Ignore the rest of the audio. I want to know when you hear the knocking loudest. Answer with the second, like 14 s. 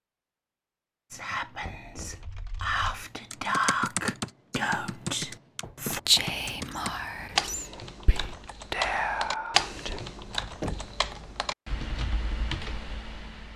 11 s.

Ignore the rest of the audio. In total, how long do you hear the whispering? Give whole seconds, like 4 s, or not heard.
9 s.